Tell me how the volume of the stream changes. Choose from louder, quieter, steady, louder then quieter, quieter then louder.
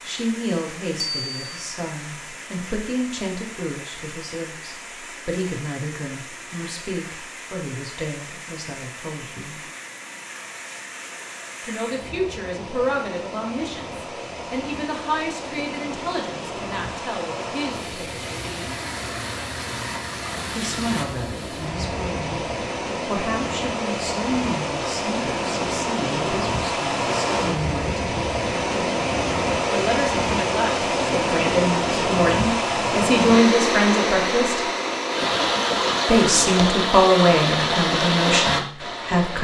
louder.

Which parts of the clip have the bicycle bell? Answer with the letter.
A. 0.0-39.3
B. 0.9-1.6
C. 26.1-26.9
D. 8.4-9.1
B.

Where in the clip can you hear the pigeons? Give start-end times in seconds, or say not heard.
not heard.